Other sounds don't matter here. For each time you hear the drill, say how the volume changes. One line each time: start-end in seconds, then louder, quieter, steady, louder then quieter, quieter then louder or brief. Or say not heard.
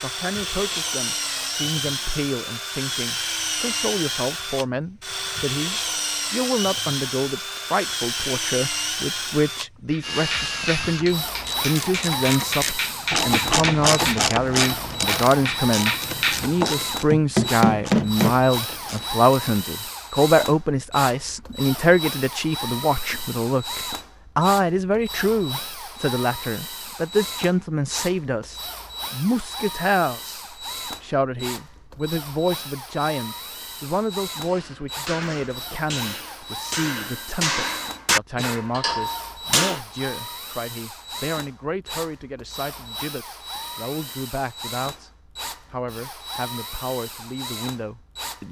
0.0-48.4 quieter.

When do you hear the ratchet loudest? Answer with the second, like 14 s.
14 s.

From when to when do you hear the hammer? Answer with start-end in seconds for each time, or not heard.
9.9-18.8, 34.4-39.8.